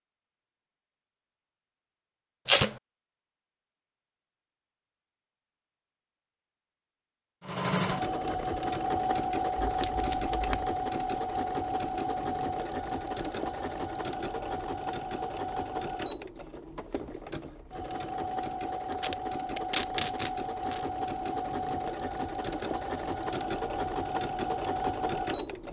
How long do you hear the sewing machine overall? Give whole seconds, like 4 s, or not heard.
18 s.